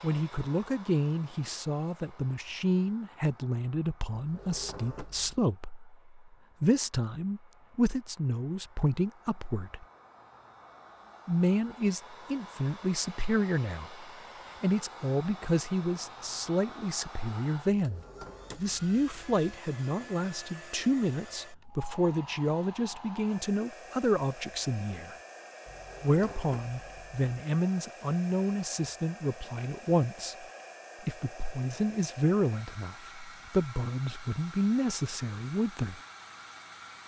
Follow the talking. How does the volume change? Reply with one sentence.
The volume of the talking stays about the same.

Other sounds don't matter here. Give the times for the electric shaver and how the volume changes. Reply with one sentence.
The electric shaver can't be heard in this clip.